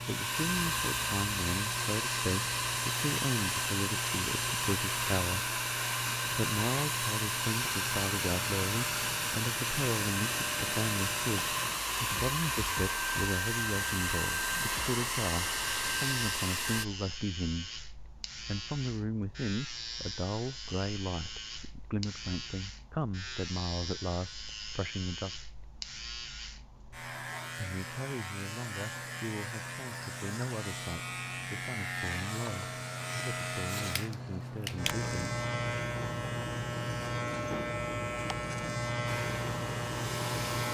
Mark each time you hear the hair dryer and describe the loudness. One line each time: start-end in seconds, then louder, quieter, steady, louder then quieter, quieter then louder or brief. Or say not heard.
0.0-16.9 steady
39.0-40.6 brief.